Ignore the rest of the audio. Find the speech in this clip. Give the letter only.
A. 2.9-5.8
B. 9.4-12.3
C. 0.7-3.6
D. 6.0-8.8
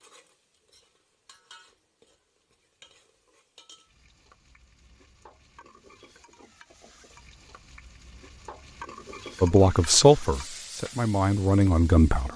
B.